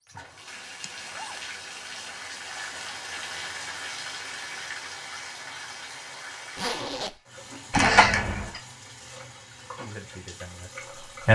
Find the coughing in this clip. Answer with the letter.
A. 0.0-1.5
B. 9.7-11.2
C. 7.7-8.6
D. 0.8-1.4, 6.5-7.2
C.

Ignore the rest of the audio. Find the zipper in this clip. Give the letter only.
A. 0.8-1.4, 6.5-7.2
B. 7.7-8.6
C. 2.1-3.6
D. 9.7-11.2
A.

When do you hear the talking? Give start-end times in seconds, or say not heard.
9.7-11.2.